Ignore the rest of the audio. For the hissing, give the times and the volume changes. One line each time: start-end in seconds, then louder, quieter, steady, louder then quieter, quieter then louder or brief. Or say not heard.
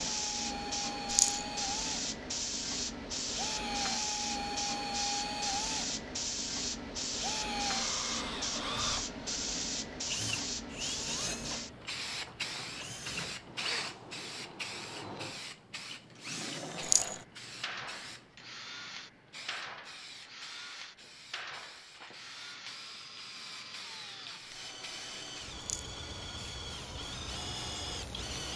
0.0-28.5 quieter.